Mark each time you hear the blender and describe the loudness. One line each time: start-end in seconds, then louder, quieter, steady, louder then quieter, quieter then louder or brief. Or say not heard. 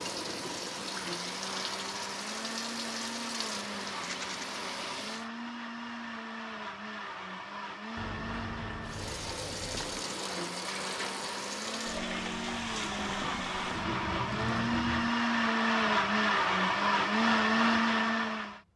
0.0-18.6 louder.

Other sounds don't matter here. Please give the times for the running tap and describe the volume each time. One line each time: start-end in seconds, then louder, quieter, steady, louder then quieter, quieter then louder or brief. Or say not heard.
0.0-5.3 steady
8.8-15.2 steady.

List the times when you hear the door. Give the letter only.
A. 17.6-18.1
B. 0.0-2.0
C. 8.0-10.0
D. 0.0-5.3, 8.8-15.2
C.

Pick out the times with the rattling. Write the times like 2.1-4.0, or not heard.
4.0-4.5.